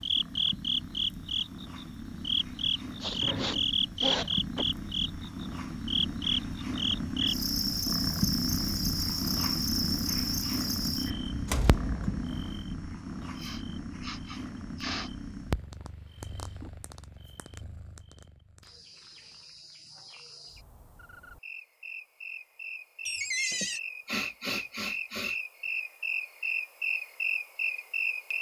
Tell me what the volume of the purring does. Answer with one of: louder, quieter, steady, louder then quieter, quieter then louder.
louder then quieter.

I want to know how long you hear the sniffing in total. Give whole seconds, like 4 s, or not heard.
5 s.